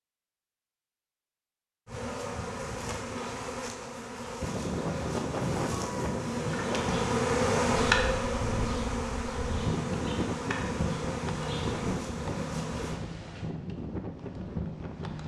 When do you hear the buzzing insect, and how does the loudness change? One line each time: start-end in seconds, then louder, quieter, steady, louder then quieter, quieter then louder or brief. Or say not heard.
1.9-13.0 louder then quieter.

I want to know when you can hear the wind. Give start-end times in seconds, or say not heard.
4.4-15.2.